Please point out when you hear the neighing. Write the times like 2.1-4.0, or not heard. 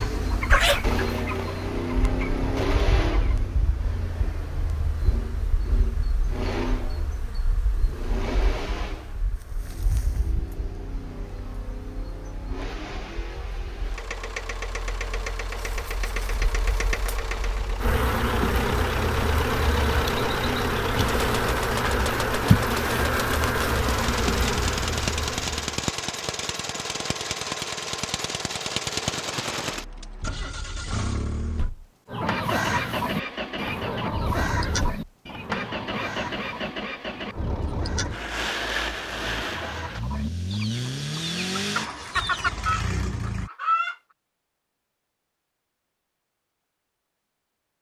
not heard.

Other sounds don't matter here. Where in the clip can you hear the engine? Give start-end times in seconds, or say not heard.
0.0-43.5.